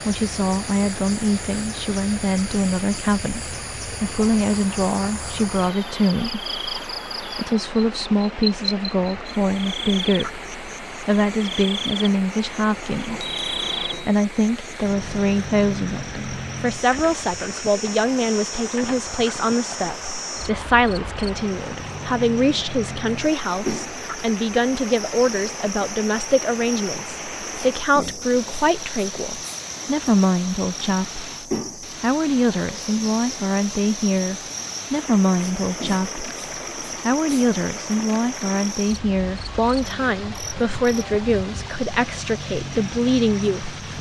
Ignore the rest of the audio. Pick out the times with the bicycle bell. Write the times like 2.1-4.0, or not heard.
13.1-14.2.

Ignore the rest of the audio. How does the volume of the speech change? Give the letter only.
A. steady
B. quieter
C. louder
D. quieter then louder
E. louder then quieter
A.